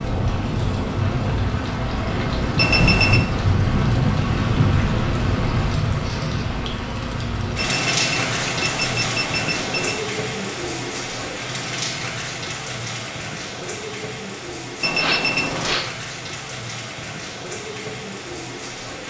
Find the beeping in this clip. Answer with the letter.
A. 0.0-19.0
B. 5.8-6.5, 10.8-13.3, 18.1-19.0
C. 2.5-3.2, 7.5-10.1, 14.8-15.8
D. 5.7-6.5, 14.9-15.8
C.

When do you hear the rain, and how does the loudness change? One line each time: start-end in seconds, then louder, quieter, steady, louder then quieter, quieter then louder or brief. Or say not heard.
0.0-19.0 quieter.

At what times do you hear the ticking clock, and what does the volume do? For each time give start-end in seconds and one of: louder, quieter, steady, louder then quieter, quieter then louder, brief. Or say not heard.
not heard.